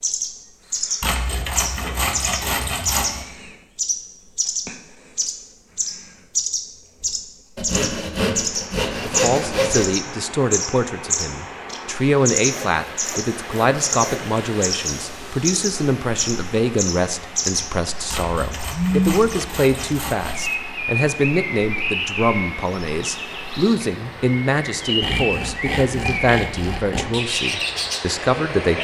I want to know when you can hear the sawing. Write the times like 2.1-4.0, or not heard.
1.0-3.2, 7.5-9.9, 12.5-14.3, 18.1-20.6, 25.0-27.1.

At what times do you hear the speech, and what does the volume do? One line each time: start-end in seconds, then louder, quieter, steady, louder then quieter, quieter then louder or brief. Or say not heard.
9.0-28.7 steady.